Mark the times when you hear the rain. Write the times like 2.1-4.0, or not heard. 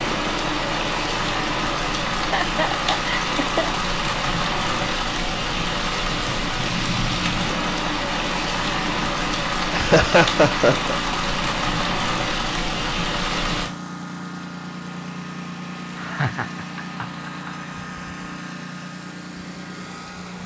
0.0-13.7.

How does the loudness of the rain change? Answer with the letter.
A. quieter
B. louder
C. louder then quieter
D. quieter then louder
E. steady
E.